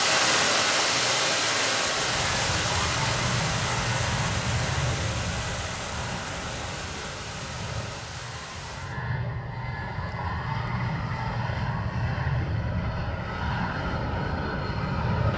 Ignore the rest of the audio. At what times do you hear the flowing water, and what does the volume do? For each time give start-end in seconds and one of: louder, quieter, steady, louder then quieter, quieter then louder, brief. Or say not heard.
0.0-9.0 quieter.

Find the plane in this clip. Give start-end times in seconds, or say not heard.
1.8-15.3.